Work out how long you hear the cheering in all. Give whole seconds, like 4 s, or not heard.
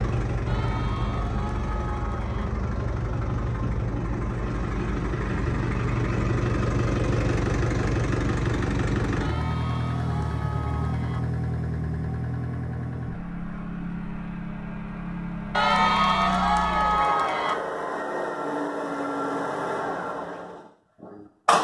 6 s.